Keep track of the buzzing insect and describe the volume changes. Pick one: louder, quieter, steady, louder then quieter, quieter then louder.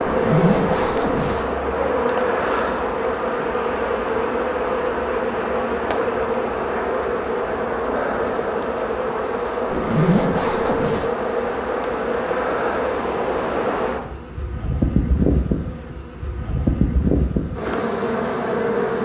steady.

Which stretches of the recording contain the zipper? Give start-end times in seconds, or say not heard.
0.1-1.4, 9.7-11.1.